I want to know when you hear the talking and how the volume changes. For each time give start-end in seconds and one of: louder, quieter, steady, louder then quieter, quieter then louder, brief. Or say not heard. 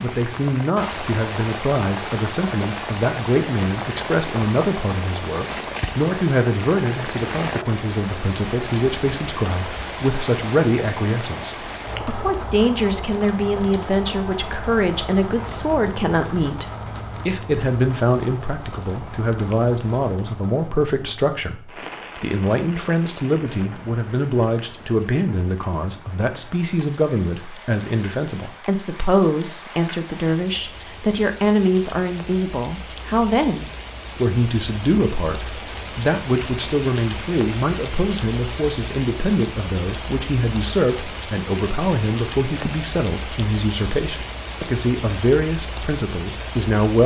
0.0-47.0 steady.